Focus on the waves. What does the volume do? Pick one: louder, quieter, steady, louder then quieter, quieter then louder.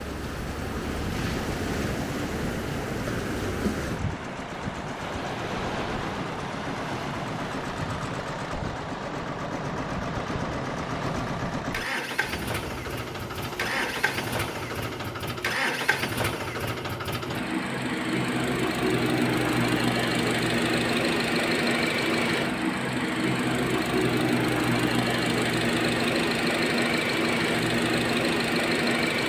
quieter.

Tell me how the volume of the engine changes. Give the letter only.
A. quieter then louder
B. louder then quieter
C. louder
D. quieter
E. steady
C.